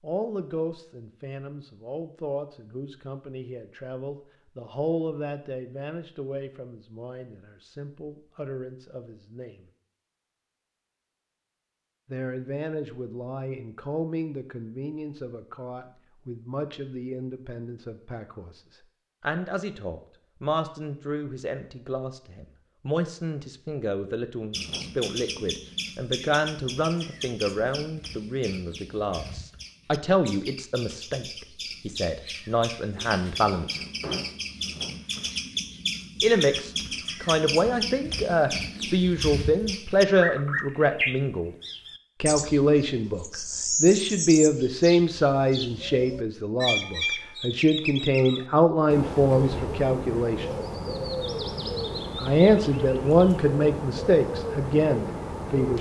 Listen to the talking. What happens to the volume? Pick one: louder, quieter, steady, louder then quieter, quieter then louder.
louder.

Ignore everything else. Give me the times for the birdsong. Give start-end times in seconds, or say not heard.
24.5-55.7.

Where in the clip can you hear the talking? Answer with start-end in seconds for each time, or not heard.
0.0-9.7, 12.1-18.6, 19.2-33.8, 36.2-41.5, 42.2-50.5, 52.1-55.7.